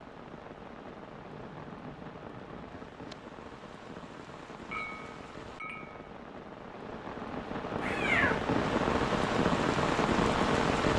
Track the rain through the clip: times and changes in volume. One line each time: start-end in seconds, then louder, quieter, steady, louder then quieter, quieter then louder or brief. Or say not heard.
0.0-10.9 louder.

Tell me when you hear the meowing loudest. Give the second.
8 s.